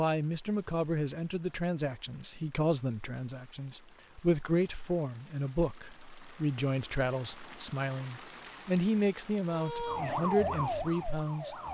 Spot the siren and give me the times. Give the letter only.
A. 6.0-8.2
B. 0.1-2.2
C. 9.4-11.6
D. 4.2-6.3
C.